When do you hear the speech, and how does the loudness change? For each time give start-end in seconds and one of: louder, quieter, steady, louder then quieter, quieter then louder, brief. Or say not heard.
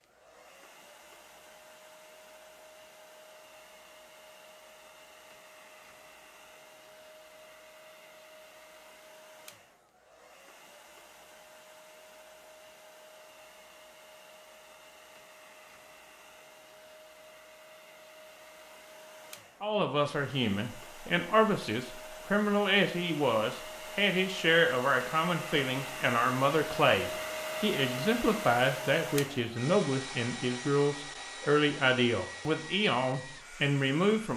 19.6-34.3 steady.